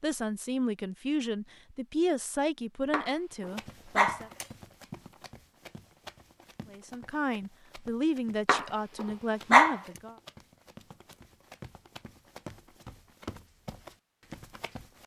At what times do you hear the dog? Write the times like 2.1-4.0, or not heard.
2.9-4.5, 8.4-9.8.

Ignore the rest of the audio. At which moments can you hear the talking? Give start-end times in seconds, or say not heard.
0.0-4.3, 6.7-10.2.